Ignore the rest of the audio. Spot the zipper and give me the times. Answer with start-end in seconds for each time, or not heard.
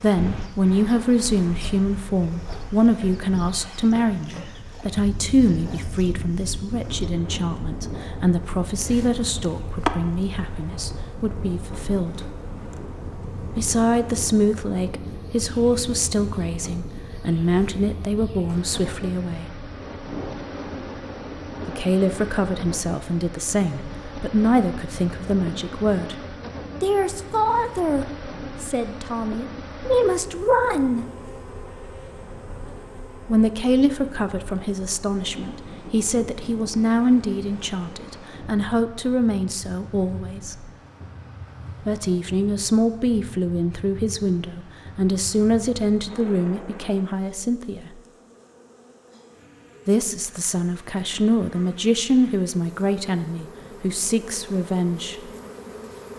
not heard.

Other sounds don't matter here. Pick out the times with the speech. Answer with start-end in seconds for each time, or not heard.
0.0-12.3, 13.6-19.6, 21.6-31.1, 33.2-40.6, 41.9-47.9, 49.9-55.1.